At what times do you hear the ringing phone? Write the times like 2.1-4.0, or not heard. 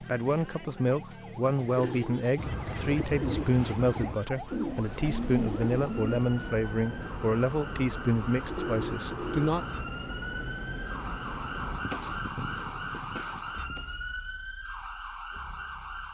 1.8-2.2, 8.4-9.5.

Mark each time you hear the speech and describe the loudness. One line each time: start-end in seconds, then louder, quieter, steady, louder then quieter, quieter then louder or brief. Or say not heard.
0.0-9.7 steady.